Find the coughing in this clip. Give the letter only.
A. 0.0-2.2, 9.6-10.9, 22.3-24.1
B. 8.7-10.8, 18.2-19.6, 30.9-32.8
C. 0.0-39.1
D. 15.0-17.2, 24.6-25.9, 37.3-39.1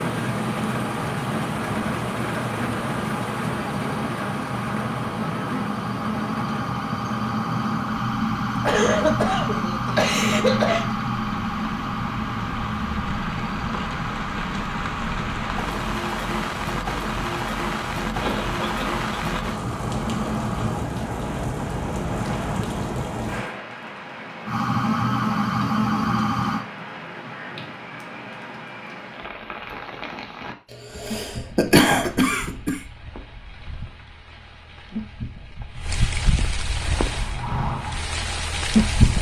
B.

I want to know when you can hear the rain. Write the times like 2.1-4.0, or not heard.
0.0-39.1.